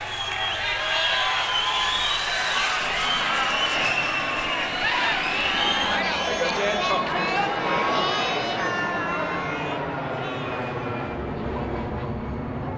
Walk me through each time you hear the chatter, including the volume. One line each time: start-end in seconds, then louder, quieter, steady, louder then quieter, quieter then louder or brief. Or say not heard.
0.0-12.7 quieter.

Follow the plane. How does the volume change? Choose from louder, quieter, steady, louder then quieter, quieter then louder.
steady.